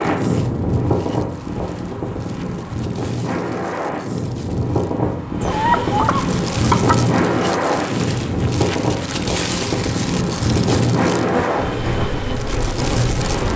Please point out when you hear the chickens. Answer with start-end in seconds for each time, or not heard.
5.4-7.0.